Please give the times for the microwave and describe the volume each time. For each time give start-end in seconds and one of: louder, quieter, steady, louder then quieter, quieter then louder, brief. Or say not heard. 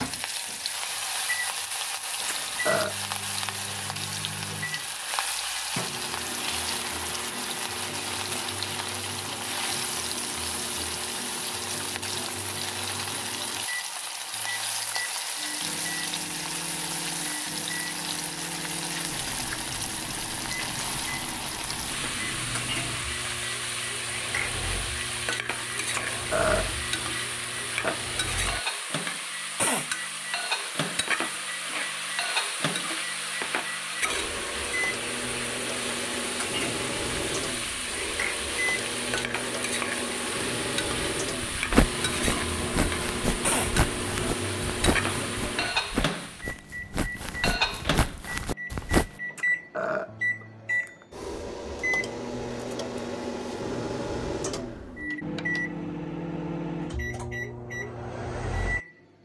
0.0-58.9 louder.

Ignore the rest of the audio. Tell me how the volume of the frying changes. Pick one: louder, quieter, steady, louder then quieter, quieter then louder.
steady.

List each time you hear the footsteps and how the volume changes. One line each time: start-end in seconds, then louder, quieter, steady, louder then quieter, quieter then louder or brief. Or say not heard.
41.4-49.1 steady.